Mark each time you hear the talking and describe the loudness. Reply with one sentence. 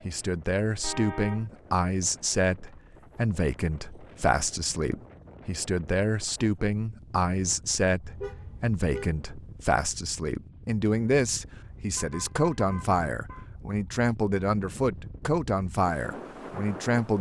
You can hear the talking from 0.1 to 17.1 s, at a steady volume.